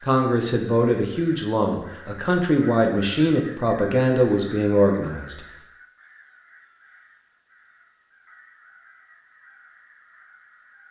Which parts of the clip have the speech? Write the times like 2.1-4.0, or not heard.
0.0-5.5.